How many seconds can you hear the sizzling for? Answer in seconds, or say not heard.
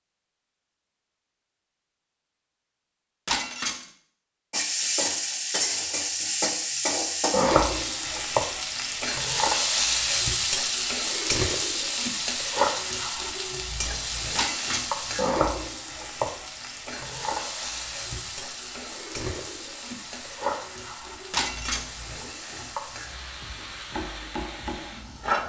21 s.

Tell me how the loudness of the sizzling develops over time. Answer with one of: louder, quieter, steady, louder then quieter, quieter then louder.
quieter.